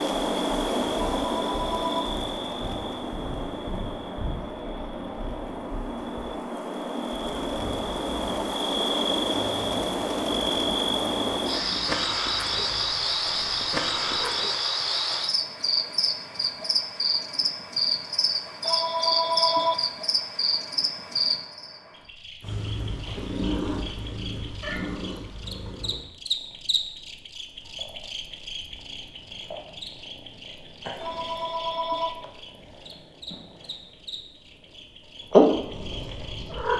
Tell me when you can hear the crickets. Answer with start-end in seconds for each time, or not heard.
0.0-36.7.